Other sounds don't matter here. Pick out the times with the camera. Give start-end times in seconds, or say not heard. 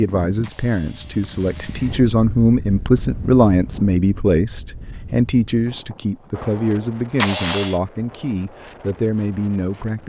0.4-1.9, 7.2-7.8.